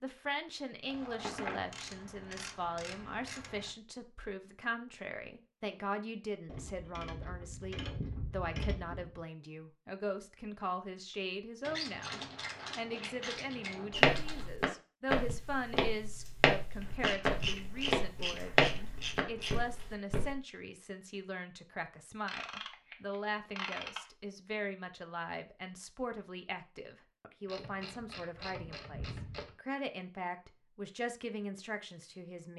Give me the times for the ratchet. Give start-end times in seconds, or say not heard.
0.9-3.7, 6.5-9.2, 11.6-14.5, 16.8-19.6, 22.2-24.0, 27.4-29.6.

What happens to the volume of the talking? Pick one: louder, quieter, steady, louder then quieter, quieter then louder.
steady.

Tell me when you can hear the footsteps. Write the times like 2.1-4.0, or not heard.
13.9-20.4.